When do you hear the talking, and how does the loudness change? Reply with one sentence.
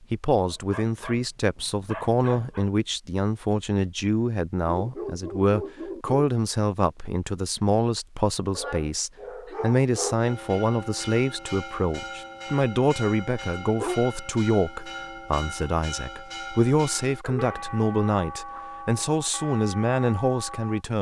You can hear the talking from 0.0 to 20.9 s, at a steady volume.